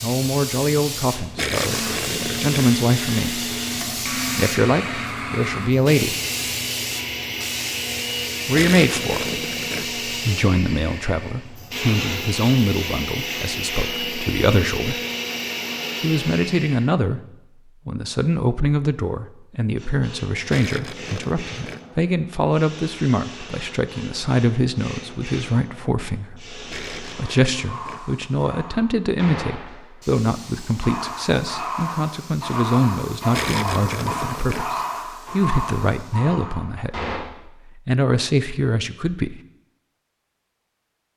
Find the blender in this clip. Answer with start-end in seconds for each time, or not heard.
1.6-16.9.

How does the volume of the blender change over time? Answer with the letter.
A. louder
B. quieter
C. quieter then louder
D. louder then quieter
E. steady
E.